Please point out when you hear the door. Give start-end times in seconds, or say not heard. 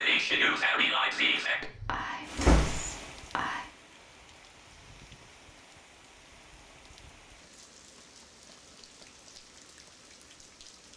1.4-2.8.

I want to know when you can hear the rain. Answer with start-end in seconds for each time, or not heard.
2.2-10.9.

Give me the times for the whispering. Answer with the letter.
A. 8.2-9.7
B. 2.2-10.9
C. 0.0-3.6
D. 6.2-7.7
C.